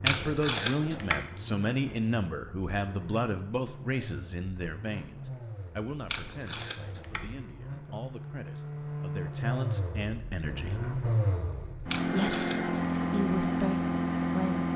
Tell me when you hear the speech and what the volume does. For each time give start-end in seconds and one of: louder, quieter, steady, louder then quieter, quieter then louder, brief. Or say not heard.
0.0-10.8 quieter then louder
12.1-14.7 brief.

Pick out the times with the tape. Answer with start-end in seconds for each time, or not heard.
0.1-1.2, 6.0-7.2, 11.8-13.0.